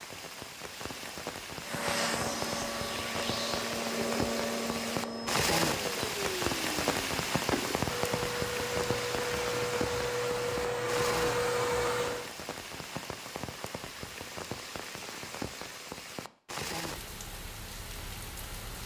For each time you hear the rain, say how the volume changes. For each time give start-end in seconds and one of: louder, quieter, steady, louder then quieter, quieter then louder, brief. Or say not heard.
0.0-18.8 louder then quieter.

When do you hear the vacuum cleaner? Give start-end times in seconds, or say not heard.
1.6-12.3.